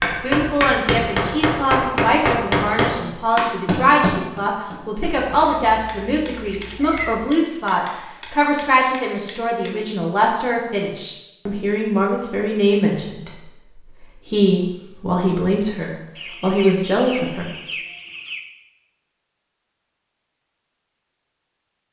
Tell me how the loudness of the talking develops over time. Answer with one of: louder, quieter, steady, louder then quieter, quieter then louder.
steady.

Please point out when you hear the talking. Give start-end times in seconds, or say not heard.
0.0-17.5.